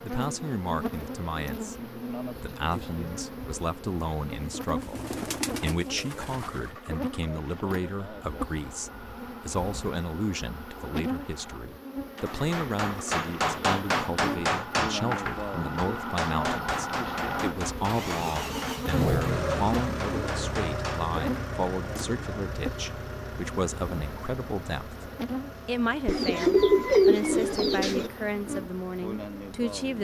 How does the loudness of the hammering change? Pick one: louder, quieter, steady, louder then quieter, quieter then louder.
quieter.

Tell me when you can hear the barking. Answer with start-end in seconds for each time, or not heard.
not heard.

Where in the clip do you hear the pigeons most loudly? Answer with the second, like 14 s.
27 s.